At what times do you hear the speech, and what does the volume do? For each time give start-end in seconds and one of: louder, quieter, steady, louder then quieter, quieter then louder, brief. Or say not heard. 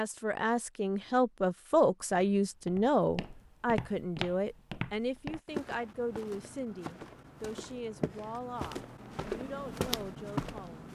0.0-10.9 quieter.